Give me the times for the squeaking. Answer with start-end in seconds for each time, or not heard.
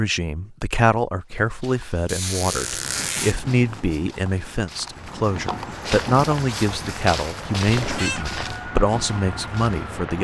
2.0-3.4, 7.8-8.6.